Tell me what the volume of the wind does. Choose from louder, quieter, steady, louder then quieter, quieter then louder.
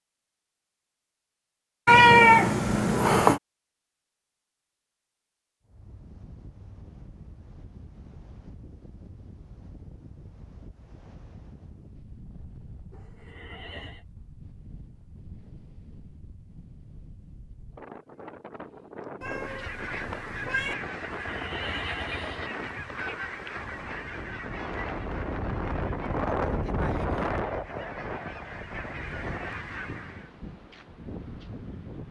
louder.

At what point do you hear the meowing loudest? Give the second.
2 s.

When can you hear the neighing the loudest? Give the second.
22 s.